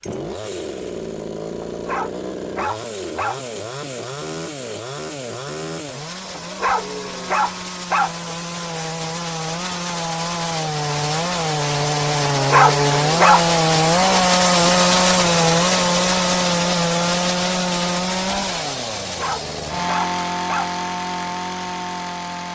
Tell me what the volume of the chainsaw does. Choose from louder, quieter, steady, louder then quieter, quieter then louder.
louder then quieter.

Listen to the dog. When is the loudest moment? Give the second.
13 s.